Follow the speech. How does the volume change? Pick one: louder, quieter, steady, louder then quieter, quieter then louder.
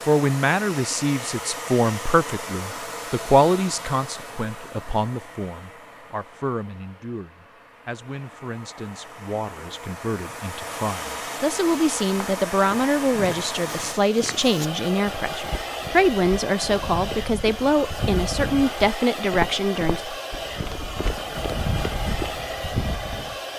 quieter then louder.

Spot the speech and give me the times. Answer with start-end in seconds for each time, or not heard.
0.1-20.0.